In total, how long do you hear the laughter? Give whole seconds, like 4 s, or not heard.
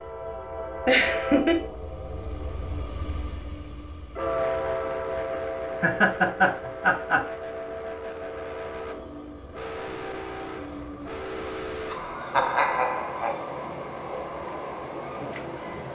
4 s.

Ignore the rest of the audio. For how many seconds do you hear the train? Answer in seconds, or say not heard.
16 s.